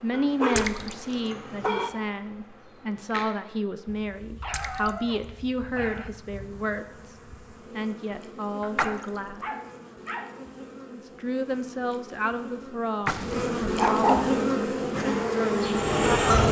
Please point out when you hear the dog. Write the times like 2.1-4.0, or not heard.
0.1-1.9, 4.4-6.1, 8.6-10.3, 13.1-14.3.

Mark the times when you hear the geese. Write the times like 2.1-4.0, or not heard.
14.9-16.4.